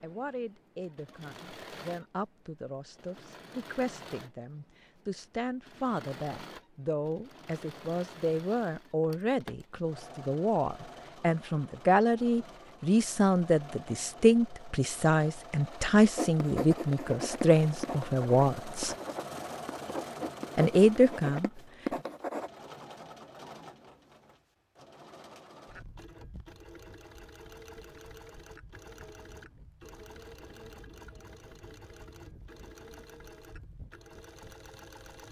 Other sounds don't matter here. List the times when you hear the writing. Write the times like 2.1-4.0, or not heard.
16.1-22.5.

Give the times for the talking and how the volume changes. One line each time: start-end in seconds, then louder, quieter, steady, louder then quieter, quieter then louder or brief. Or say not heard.
0.0-18.9 louder
20.6-21.5 brief.